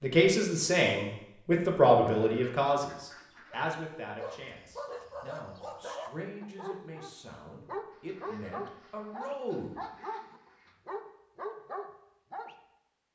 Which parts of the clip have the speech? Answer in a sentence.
The speech can be heard from 0.0 to 9.8 s.